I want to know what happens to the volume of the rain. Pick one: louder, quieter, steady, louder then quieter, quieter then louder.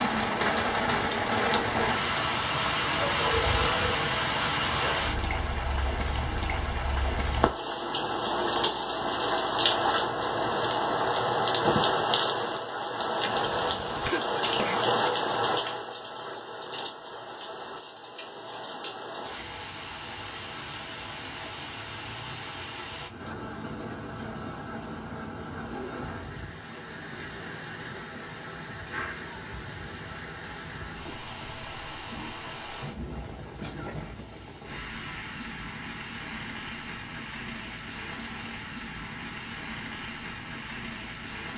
quieter.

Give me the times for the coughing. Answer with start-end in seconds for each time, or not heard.
13.3-14.8, 33.4-34.5.